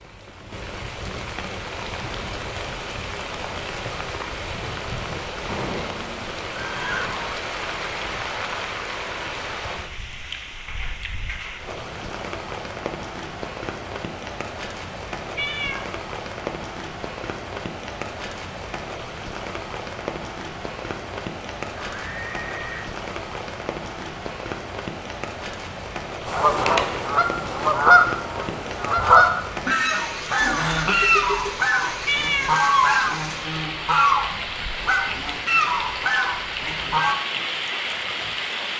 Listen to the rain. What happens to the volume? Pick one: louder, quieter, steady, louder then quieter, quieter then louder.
steady.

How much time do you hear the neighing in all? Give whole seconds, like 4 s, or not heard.
4 s.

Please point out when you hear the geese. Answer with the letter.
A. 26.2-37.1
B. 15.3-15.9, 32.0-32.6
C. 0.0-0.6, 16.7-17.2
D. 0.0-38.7
A.